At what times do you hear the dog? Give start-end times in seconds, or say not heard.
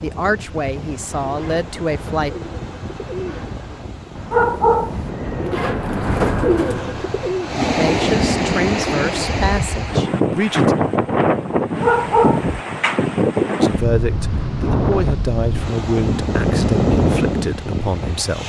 4.3-5.1, 11.8-12.6.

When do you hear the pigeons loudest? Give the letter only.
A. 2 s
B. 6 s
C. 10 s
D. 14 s
B.